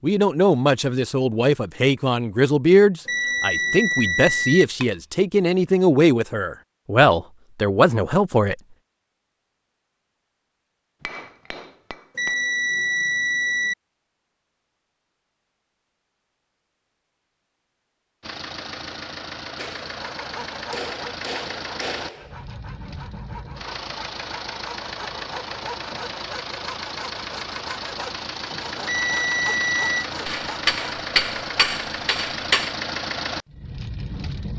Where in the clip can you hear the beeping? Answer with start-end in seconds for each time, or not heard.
3.0-4.7, 12.2-13.8, 28.9-30.1.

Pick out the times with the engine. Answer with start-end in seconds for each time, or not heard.
18.2-34.5.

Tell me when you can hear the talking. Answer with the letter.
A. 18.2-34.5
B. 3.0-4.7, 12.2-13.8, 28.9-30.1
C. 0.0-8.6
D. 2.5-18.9
C.